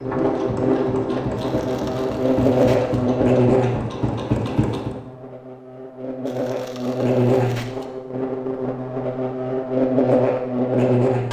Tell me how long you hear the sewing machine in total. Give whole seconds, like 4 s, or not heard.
5 s.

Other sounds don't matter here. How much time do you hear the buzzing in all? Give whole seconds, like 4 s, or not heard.
11 s.